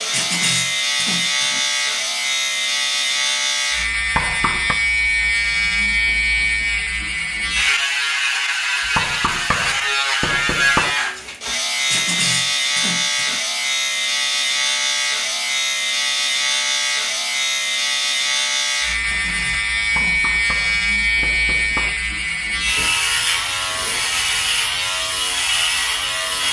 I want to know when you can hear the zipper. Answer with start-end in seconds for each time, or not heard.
not heard.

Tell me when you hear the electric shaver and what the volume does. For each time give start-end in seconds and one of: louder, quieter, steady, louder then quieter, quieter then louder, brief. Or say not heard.
0.0-26.4 steady.